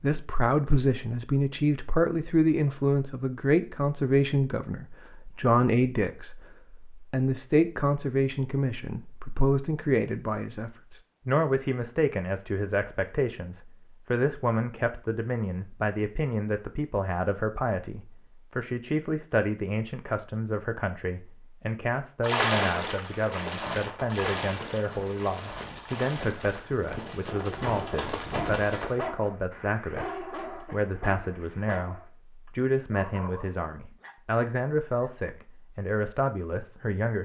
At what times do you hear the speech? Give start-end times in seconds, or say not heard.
0.0-37.2.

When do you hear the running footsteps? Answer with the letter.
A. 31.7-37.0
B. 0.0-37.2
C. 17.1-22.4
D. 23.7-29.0
D.